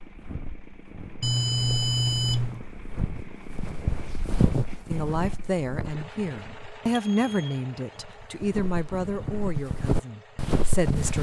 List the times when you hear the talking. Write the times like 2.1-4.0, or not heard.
4.9-11.1.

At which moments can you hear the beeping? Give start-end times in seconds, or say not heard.
1.2-2.6, 6.9-7.6.